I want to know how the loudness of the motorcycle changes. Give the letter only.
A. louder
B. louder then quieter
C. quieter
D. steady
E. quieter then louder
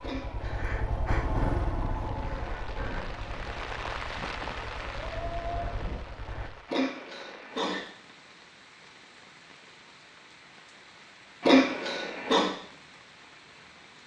E.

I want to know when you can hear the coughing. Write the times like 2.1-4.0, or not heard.
0.0-0.6, 6.7-7.8, 11.4-12.5.